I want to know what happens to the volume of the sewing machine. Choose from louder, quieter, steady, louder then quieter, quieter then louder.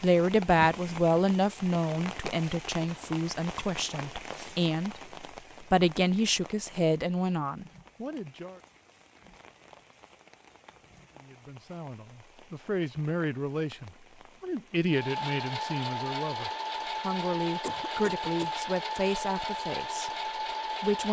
steady.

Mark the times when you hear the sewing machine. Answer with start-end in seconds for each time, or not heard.
14.8-21.0.